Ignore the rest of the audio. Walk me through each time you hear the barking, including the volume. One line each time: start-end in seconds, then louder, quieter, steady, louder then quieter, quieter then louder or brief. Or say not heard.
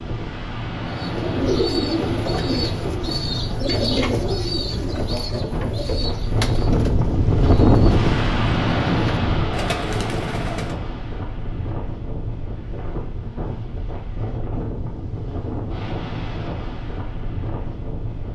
not heard.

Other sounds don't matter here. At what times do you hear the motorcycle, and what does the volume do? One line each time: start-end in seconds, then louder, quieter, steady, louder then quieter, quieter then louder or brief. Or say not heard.
not heard.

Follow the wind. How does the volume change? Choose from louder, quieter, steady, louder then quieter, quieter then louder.
louder then quieter.